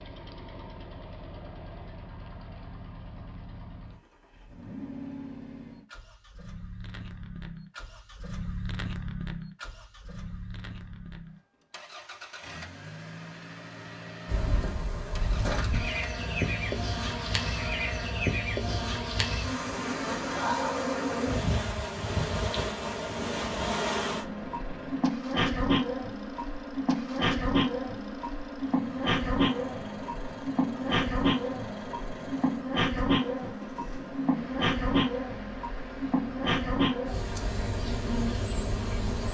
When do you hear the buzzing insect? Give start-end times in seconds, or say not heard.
14.2-39.2.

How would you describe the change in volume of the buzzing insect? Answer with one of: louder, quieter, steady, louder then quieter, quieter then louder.
steady.